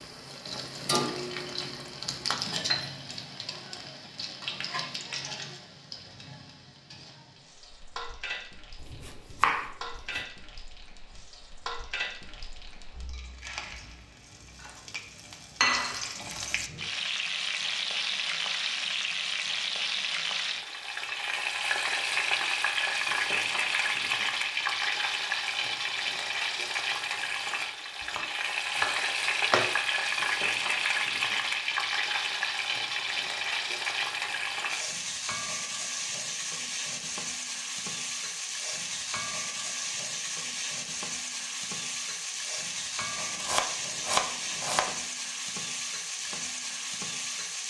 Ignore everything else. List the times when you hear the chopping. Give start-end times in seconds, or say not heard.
8.8-10.2, 28.1-29.8, 43.1-45.0.